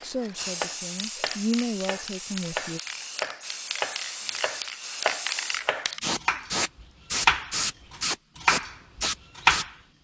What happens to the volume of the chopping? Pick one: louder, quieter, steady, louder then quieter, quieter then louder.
louder.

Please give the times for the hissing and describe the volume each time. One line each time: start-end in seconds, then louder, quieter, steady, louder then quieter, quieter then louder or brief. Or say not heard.
0.0-9.7 louder.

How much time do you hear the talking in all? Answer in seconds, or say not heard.
3 s.